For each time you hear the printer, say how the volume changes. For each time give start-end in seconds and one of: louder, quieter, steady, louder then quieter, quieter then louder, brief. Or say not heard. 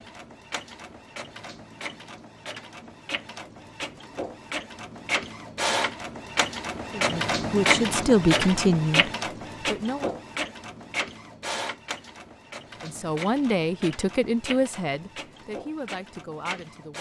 0.0-16.9 louder then quieter.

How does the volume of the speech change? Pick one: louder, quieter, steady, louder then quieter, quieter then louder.
quieter.